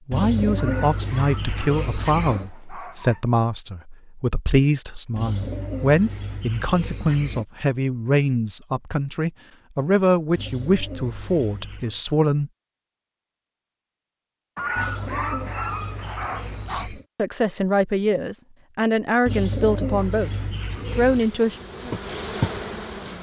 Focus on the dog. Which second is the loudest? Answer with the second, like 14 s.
15 s.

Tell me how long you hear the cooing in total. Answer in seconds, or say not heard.
11 s.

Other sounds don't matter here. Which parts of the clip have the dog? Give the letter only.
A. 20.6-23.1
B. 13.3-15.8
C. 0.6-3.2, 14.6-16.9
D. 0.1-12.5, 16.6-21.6
C.